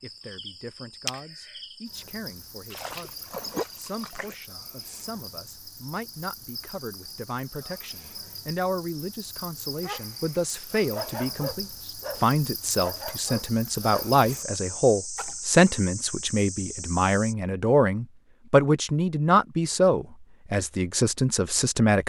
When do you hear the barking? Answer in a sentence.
You can hear the barking from 9.8 to 14.2 s.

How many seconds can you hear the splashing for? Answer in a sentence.
The splashing can be heard for 2 seconds in total.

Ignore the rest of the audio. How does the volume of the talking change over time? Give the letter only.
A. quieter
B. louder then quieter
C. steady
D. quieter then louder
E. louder
E.